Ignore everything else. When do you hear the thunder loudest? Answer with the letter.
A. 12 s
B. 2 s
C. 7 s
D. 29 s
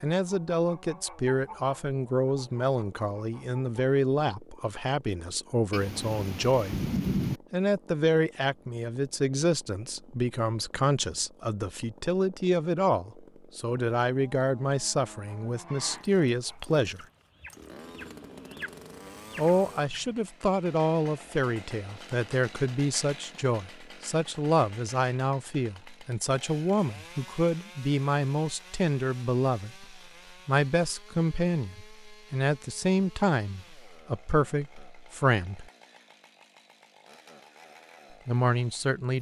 C.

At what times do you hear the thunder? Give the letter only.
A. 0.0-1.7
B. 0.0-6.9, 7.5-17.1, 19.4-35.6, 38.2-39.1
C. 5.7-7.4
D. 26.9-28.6
C.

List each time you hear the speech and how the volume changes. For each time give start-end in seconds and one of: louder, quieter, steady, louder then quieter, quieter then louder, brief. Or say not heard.
0.0-6.9 steady
7.5-17.1 steady
19.4-35.6 steady
38.2-39.1 brief.